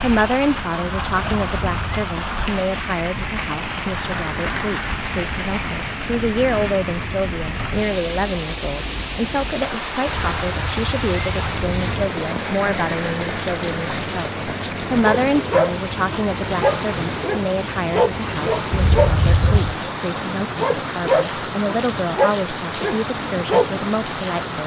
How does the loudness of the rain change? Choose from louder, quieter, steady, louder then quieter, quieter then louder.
steady.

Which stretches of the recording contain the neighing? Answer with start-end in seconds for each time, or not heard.
0.9-2.1, 10.1-12.1, 18.7-19.8.